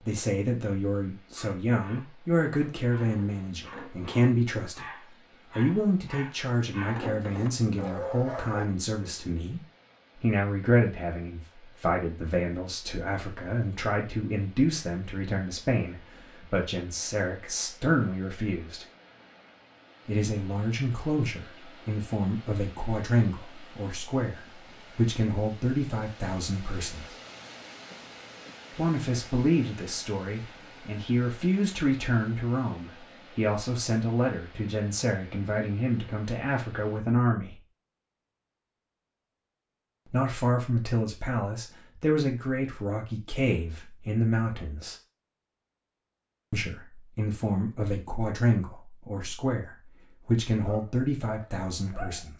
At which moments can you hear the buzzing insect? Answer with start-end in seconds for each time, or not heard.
not heard.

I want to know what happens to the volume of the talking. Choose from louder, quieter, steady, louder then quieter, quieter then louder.
steady.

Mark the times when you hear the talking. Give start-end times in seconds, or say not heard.
0.0-18.9, 20.1-27.1, 28.7-37.6, 40.0-45.0, 46.5-52.3.